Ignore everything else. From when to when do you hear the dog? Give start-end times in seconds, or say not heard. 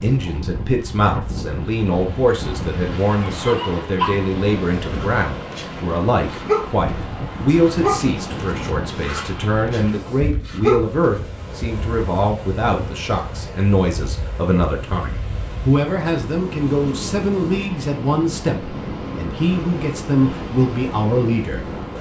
3.2-6.7, 7.7-10.8.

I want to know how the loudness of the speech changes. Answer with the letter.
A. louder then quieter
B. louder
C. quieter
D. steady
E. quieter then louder
D.